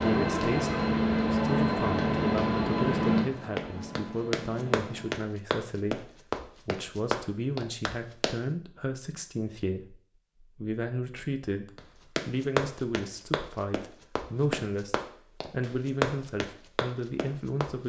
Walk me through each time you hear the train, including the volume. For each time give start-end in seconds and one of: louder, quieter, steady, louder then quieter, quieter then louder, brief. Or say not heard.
0.0-5.2 quieter.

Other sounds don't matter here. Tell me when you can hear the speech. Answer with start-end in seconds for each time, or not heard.
0.0-17.8.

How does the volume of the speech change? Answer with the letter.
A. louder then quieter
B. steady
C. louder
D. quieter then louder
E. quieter
B.